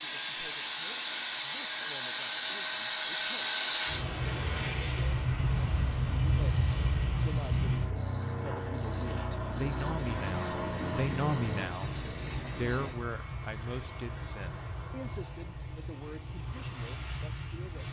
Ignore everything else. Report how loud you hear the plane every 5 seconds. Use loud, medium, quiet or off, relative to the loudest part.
loud, loud, medium, medium.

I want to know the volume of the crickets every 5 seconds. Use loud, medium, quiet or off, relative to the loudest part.
loud, loud, loud, off.